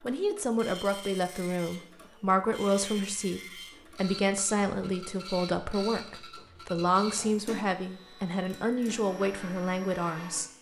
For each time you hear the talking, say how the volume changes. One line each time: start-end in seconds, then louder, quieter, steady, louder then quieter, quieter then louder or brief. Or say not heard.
0.0-10.5 steady.